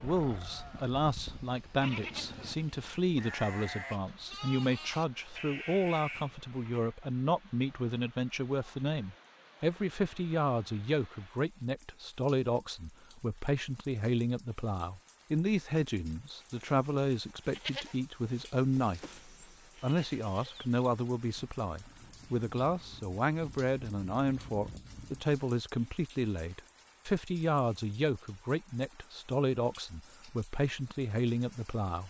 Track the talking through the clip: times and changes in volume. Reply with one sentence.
You can hear the talking from 0.0 to 32.0 s, at a steady volume.